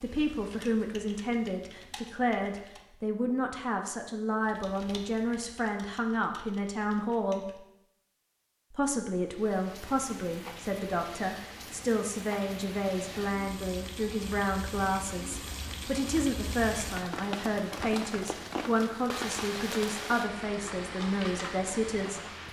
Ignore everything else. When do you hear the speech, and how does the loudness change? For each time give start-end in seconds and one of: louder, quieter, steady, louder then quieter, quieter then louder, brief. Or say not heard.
0.0-7.6 steady
8.7-22.3 steady.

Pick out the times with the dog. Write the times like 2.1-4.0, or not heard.
not heard.